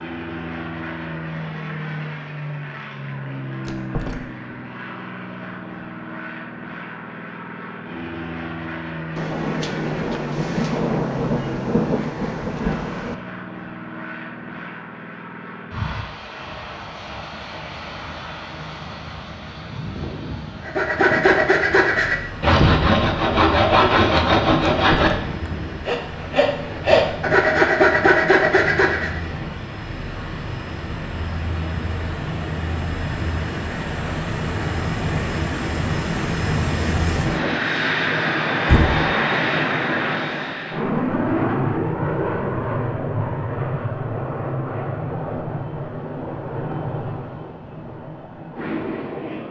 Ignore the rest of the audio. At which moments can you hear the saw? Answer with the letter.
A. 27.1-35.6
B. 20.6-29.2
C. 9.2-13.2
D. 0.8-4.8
B.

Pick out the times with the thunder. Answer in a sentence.
The thunder can be heard from 9.2 to 13.2 s.